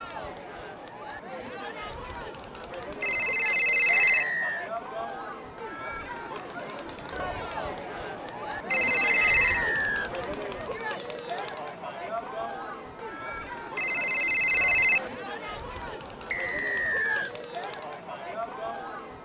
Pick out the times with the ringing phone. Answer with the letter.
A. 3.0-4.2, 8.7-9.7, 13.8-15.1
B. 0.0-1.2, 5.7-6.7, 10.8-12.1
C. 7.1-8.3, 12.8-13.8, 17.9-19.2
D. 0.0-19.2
A.